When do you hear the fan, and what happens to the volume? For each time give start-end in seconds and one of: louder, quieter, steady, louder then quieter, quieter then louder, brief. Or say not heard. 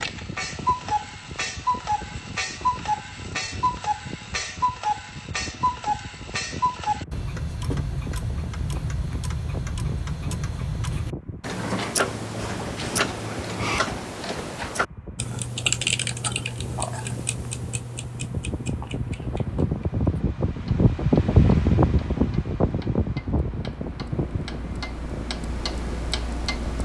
0.0-26.8 louder.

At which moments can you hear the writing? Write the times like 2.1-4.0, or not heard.
not heard.